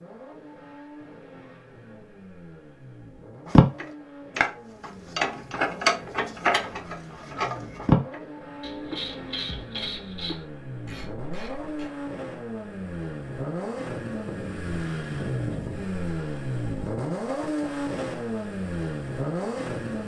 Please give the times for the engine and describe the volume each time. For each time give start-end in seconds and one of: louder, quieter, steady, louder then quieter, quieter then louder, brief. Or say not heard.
0.0-20.0 louder.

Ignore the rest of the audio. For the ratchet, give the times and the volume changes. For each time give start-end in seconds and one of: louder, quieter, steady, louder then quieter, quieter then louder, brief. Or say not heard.
3.5-11.9 quieter.